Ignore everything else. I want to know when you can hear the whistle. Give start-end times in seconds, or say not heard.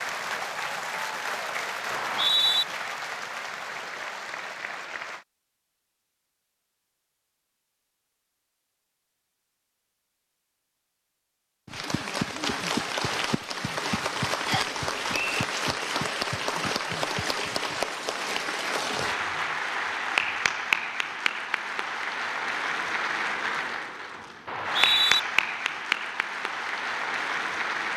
1.9-2.6, 14.4-15.4, 24.4-25.2.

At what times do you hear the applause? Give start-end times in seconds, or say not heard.
0.0-5.2, 11.7-27.9.